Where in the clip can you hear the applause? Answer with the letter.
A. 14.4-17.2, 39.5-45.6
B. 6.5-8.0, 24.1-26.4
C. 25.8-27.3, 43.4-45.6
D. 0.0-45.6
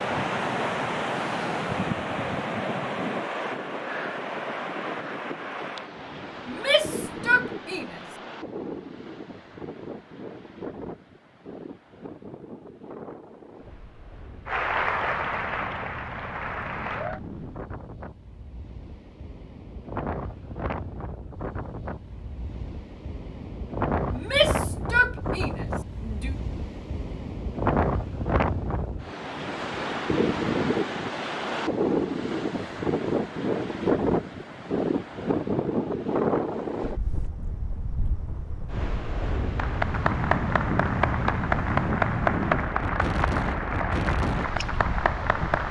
A.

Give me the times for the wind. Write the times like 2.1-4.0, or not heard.
0.0-45.6.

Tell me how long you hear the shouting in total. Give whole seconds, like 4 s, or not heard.
4 s.